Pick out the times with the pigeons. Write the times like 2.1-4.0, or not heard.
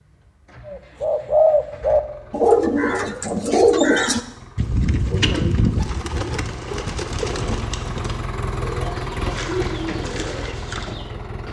0.7-11.1.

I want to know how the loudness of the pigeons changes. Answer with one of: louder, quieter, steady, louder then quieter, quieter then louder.
quieter.